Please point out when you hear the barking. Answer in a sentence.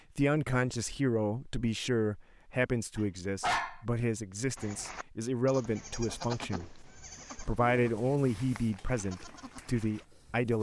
You can hear the barking from 3.0 to 3.8 s.